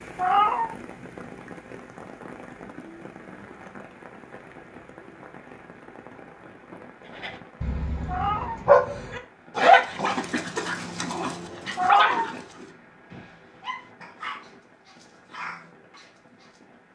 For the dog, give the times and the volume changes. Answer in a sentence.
The dog can be heard from 7.2 to 16.4 s, getting quieter.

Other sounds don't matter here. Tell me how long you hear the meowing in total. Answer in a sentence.
You can hear the meowing for 2 seconds altogether.